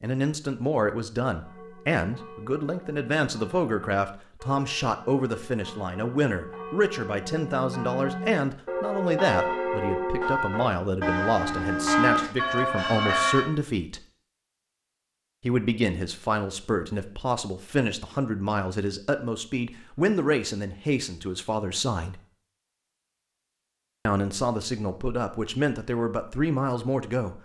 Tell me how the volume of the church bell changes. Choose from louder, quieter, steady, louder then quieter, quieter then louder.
louder.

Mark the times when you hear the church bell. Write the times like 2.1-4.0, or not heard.
1.4-13.5.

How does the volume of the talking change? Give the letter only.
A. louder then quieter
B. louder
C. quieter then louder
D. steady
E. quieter
D.